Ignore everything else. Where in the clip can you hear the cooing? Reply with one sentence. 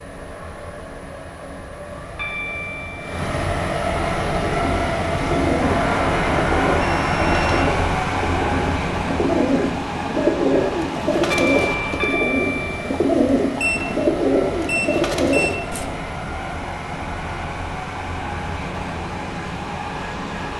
You can hear the cooing from 4.3 to 15.9 s.